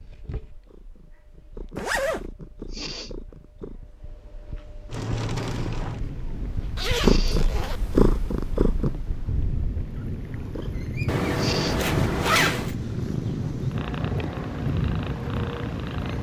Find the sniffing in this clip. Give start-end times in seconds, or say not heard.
2.7-3.1, 7.0-7.5, 11.3-11.8.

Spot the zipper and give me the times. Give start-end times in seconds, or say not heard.
1.8-2.2, 6.8-7.8, 11.1-12.8.